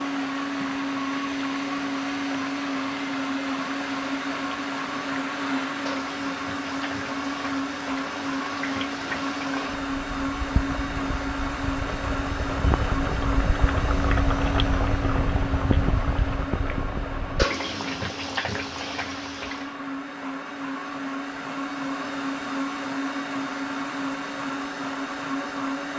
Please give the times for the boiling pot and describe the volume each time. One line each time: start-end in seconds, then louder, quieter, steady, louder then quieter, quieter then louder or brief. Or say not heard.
0.0-19.8 louder.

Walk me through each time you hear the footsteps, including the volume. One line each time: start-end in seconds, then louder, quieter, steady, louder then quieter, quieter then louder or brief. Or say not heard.
not heard.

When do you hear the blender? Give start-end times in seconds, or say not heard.
0.0-25.9.